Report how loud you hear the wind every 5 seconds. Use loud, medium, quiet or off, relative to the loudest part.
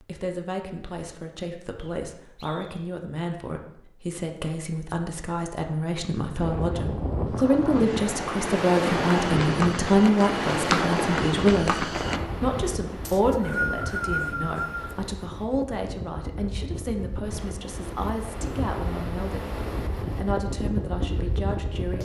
off, loud, loud, medium, loud.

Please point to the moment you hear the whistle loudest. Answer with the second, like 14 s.
14 s.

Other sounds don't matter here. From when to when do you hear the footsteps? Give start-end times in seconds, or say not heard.
9.1-12.2.